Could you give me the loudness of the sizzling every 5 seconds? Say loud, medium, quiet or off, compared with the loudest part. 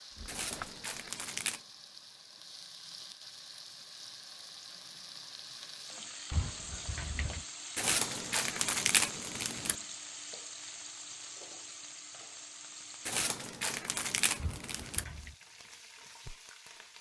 medium, loud, loud, medium.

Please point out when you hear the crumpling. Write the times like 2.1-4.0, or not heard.
0.2-1.6, 7.8-9.8, 13.1-15.1.